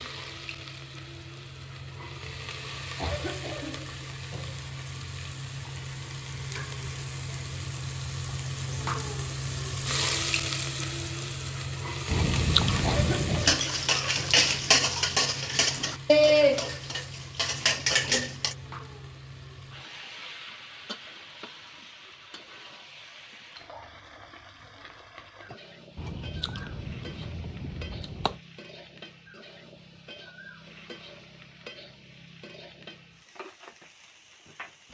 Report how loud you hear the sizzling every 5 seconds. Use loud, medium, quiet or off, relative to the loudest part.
medium, loud, loud, medium, quiet, quiet, quiet.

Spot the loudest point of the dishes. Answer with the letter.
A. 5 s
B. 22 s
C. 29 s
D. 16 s
D.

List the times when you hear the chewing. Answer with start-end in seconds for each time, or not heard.
12.1-13.6, 25.9-28.4.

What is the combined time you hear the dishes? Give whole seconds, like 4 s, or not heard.
5 s.